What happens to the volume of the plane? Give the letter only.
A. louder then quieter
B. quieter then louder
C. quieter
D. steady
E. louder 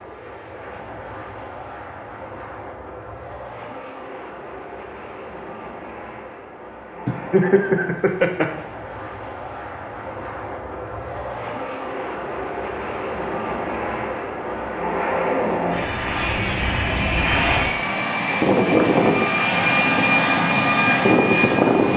E.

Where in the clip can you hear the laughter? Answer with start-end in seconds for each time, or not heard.
7.0-8.4.